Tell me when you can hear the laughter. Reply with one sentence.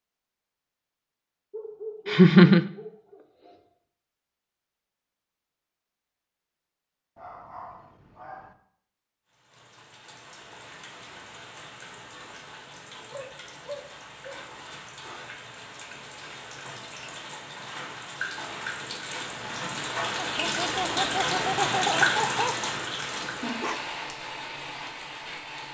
You can hear the laughter from 2.0 to 2.7 s and from 20.2 to 22.6 s.